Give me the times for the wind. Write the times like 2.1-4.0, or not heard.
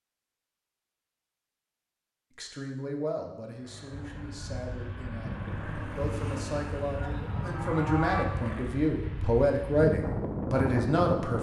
3.9-11.3.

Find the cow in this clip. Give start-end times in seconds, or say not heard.
7.0-8.2.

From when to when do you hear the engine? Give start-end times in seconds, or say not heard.
3.5-8.9.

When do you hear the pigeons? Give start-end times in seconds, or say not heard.
not heard.